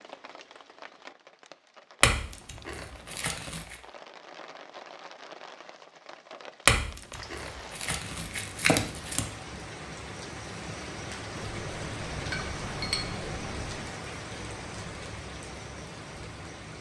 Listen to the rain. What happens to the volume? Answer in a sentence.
The volume of the rain goes up.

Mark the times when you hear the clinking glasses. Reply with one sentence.
You can hear the clinking glasses from 2.0 to 3.8 s, from 6.7 to 9.2 s and from 11.7 to 13.8 s.